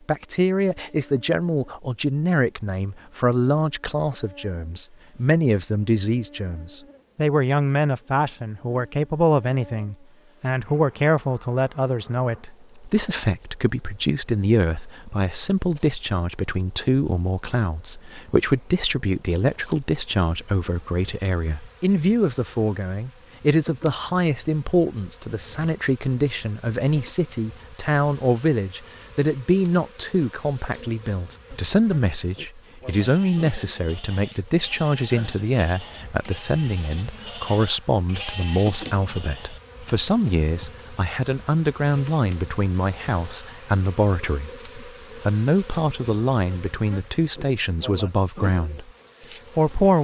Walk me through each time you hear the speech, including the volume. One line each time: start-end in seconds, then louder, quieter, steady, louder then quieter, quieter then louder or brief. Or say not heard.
0.1-48.9 steady
49.5-50.0 brief.